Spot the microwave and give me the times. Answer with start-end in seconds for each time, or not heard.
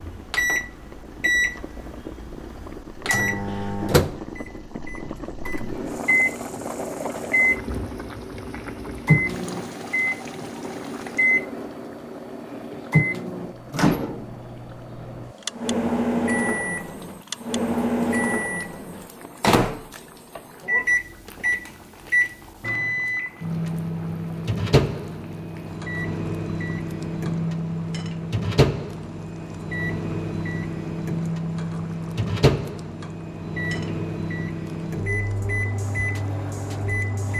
0.0-37.3.